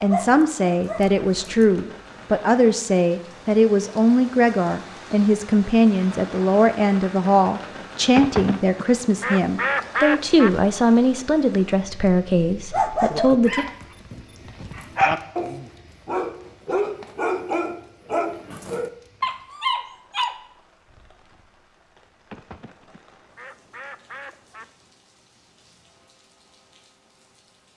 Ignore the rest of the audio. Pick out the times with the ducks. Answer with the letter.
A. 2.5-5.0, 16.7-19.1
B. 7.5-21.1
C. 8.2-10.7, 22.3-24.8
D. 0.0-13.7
C.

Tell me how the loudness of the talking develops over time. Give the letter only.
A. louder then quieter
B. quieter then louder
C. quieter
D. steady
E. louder
D.